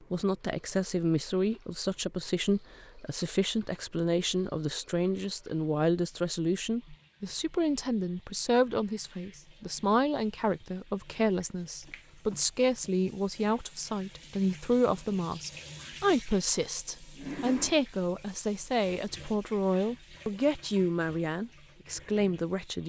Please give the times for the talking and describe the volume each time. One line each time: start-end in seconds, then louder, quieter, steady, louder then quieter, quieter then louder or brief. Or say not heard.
0.1-22.8 steady.